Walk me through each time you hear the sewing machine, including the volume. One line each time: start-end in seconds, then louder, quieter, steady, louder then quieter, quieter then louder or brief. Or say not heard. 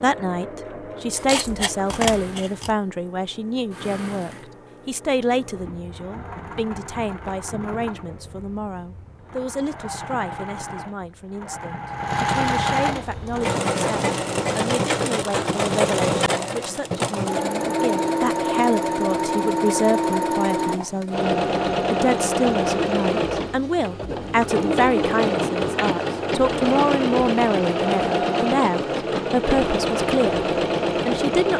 0.0-31.5 louder.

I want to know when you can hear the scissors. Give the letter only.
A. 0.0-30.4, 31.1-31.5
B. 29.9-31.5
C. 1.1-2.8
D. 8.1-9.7
C.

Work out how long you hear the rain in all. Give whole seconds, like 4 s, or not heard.
not heard.